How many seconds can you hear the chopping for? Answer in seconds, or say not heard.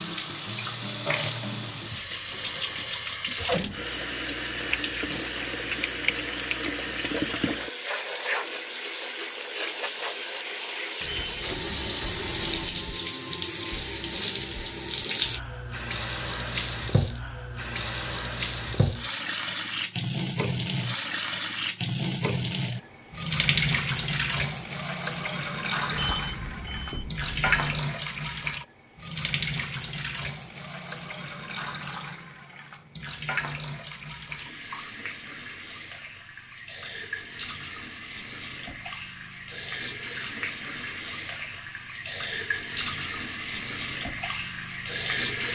not heard.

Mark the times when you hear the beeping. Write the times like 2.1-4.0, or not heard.
11.0-12.9, 25.9-27.8.